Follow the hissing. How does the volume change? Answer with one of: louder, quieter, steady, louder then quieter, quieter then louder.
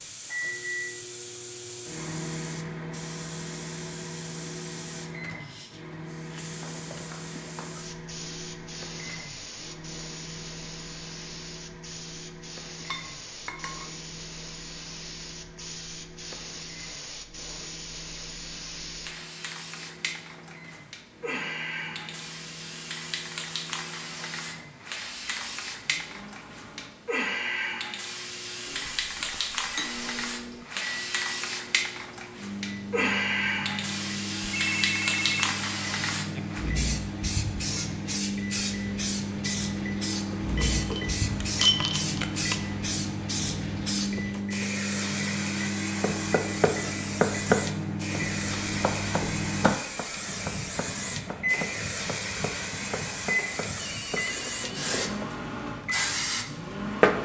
louder.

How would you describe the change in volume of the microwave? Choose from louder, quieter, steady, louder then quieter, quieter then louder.
quieter then louder.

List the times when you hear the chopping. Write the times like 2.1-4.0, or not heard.
46.0-54.2.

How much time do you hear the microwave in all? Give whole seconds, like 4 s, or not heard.
57 s.